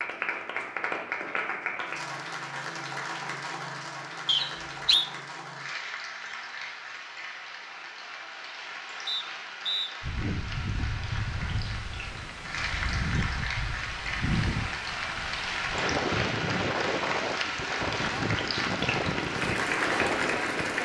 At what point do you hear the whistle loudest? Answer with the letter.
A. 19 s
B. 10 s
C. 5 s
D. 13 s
C.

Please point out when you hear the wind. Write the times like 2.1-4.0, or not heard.
10.0-20.8.